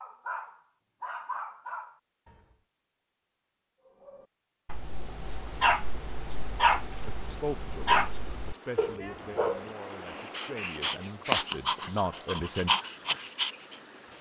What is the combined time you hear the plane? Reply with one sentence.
The plane can't be heard in this clip.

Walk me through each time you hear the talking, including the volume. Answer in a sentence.
The talking can be heard from 7.0 to 12.8 s, getting quieter then louder.